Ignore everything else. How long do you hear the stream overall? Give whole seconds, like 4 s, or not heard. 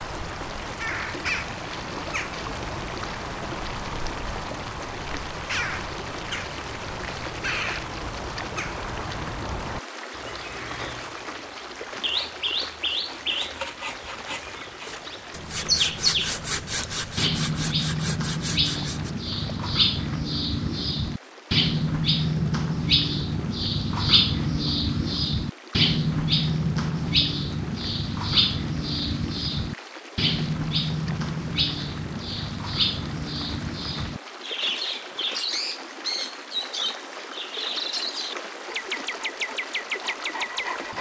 41 s.